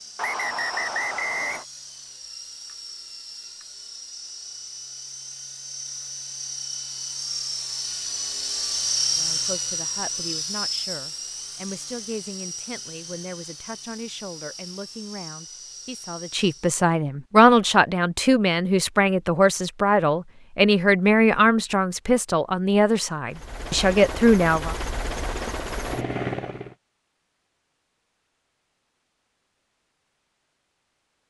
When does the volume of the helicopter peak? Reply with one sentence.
The volume of the helicopter peaks at 9 seconds.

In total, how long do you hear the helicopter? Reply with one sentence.
The helicopter can be heard for 20 seconds in total.